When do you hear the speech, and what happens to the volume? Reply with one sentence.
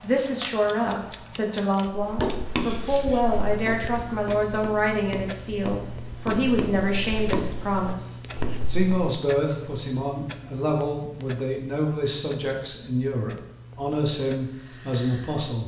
The speech can be heard from 0.0 to 15.6 s, at a steady volume.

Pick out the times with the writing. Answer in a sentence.
You can hear the writing from 1.9 to 8.9 s.